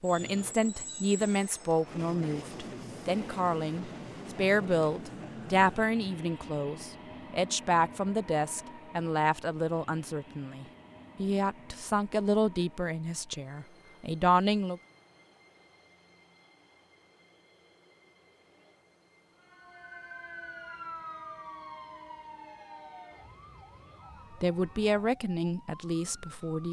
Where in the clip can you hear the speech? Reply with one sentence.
The speech can be heard from 0.0 to 14.8 s and from 24.4 to 26.6 s.